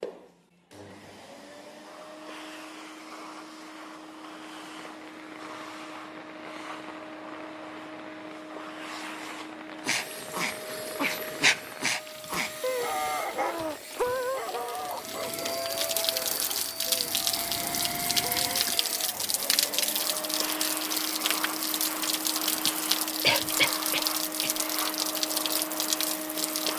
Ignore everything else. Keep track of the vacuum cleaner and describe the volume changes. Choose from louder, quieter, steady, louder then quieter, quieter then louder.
louder.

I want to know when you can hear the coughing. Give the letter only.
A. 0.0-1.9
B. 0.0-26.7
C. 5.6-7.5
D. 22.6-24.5
D.